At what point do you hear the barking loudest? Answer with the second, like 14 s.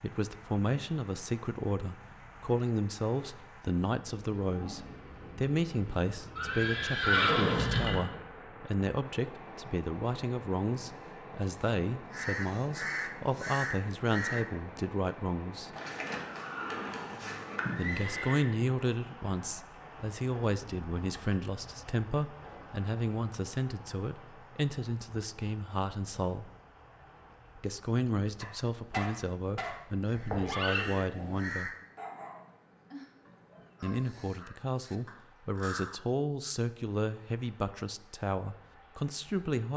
29 s.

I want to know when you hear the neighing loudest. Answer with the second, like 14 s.
7 s.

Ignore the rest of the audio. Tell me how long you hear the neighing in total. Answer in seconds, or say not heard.
5 s.